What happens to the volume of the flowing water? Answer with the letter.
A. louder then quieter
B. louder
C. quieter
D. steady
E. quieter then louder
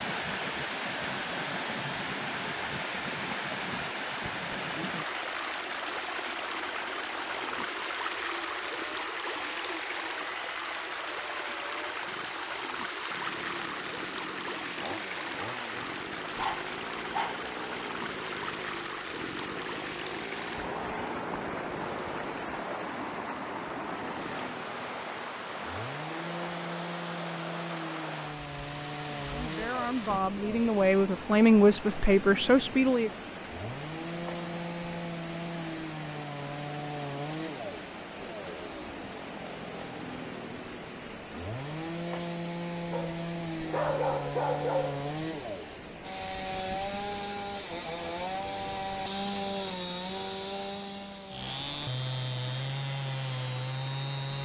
C.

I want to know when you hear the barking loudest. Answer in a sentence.
The volume of the barking peaks at 44 seconds.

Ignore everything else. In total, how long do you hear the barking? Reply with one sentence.
The barking can be heard for 3 seconds in total.